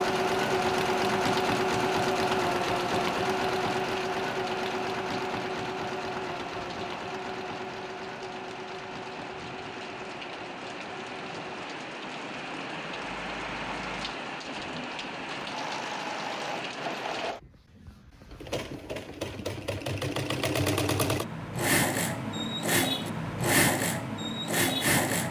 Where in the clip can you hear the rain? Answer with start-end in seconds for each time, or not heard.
0.0-17.4.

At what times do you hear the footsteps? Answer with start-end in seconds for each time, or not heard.
not heard.